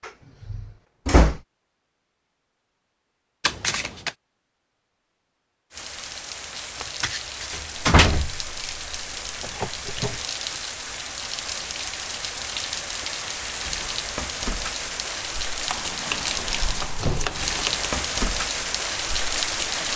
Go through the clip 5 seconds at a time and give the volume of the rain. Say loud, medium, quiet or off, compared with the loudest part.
off, medium, loud, loud.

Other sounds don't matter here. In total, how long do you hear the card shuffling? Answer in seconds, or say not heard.
4 s.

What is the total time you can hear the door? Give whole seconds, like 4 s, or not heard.
3 s.